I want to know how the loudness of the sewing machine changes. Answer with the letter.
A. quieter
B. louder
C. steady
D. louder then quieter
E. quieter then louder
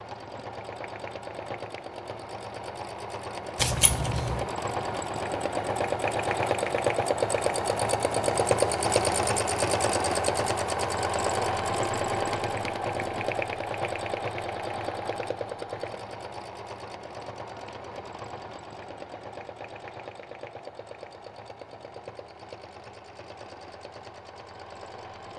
D.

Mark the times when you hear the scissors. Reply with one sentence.
The scissors can be heard from 3.5 to 4.5 s.